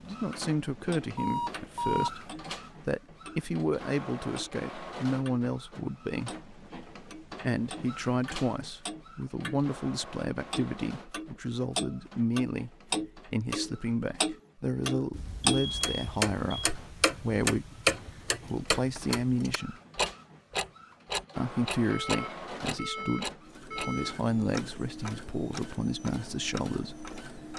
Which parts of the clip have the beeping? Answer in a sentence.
You can hear the beeping from 1.1 to 2.1 s, from 15.1 to 16.7 s and from 21.8 to 24.2 s.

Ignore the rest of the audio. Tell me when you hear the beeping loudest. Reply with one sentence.
The loudest moment of the beeping is at 2 seconds.